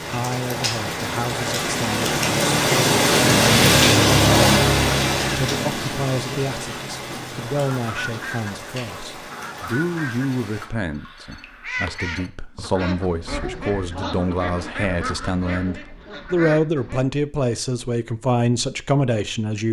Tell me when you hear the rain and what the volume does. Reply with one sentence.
The rain can be heard from 0.0 to 10.7 s, getting louder then quieter.